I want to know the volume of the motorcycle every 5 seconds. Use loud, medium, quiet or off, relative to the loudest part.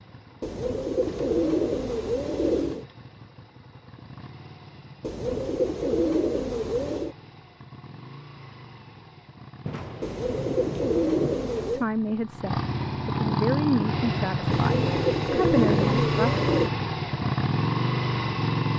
quiet, quiet, loud, loud.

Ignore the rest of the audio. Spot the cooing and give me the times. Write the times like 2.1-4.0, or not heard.
0.4-2.9, 5.0-7.2, 10.0-11.8, 14.5-16.7.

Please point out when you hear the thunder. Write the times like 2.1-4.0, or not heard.
9.7-11.7.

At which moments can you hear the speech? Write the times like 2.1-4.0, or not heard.
11.7-16.4.